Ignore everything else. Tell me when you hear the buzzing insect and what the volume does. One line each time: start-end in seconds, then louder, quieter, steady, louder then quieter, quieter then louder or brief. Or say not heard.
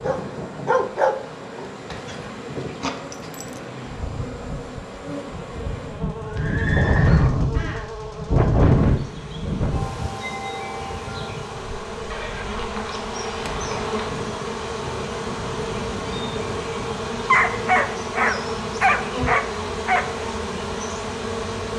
0.0-21.7 louder.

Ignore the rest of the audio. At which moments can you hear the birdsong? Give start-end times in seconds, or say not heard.
not heard.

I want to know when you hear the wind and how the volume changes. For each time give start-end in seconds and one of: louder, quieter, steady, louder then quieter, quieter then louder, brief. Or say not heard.
0.0-18.1 louder then quieter.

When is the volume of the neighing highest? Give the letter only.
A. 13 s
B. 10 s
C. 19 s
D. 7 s
D.